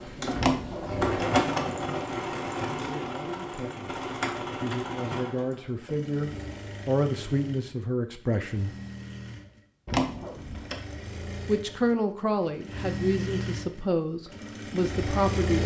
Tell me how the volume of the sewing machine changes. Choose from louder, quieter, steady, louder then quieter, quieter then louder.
quieter then louder.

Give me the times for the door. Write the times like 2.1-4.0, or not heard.
0.3-1.1, 9.8-10.8.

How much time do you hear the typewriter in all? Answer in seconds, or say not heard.
not heard.